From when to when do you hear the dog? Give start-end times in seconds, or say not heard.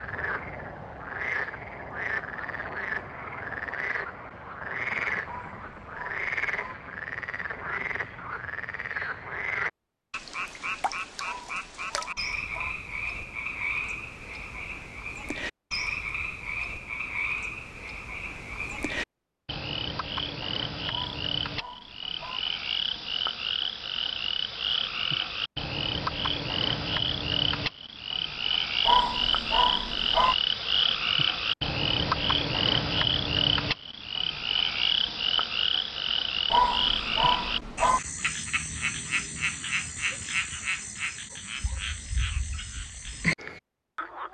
5.2-6.8, 11.2-12.8, 20.9-22.4, 28.8-30.4, 36.5-38.0.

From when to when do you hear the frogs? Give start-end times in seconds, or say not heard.
0.0-44.3.